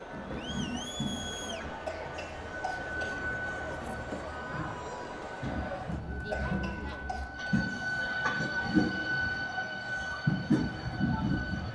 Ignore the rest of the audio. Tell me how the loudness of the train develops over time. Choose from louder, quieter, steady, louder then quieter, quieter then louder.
louder.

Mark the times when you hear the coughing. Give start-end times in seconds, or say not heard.
1.9-3.2, 6.3-7.5.